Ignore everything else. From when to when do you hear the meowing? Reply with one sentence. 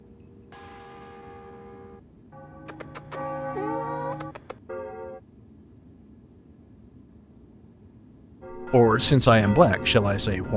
The meowing can be heard from 2.6 to 4.6 s.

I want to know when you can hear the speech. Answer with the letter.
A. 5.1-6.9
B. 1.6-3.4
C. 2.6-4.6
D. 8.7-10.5
D.